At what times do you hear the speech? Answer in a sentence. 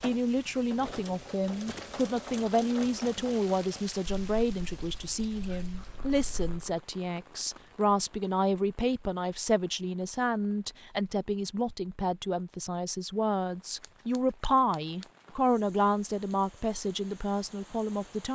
The speech can be heard from 0.0 to 18.3 s.